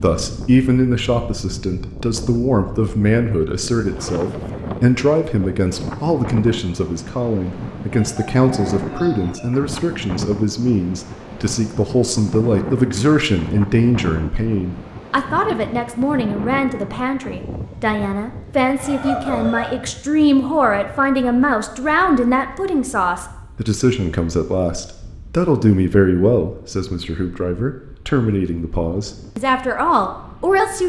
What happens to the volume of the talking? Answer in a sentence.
The volume of the talking stays about the same.